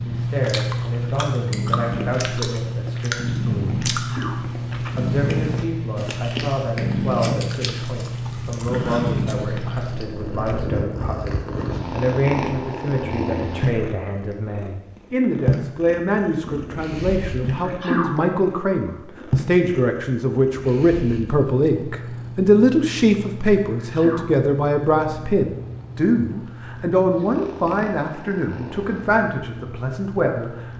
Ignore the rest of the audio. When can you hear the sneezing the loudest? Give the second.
18 s.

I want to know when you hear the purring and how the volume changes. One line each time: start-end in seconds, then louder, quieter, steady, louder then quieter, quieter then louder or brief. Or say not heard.
0.0-30.7 quieter.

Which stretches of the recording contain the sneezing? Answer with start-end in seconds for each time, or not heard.
3.9-4.4, 17.6-18.1, 23.8-24.3.